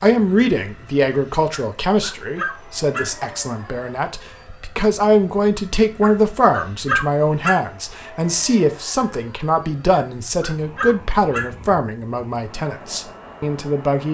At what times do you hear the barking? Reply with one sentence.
You can hear the barking from 1.5 to 3.0 s, from 6.0 to 7.5 s and from 9.9 to 11.4 s.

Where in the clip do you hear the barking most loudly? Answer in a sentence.
The volume of the barking peaks at 7 seconds.